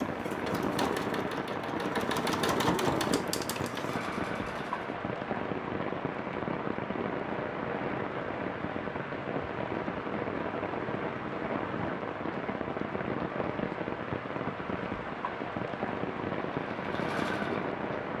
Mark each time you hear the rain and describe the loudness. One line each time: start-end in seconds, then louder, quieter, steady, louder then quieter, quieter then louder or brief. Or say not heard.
0.0-18.1 steady.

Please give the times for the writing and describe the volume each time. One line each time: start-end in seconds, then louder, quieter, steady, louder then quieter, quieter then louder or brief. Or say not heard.
not heard.